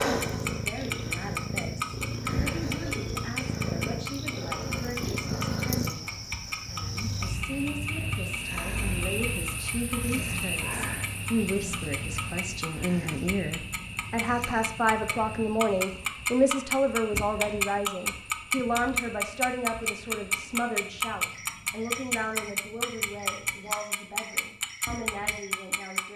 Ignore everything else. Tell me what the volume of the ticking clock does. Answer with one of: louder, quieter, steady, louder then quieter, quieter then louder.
quieter then louder.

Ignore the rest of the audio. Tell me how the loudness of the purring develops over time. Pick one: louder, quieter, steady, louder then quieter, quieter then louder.
quieter.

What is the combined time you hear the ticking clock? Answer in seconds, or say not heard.
26 s.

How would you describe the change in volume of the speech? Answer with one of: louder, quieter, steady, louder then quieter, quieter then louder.
louder then quieter.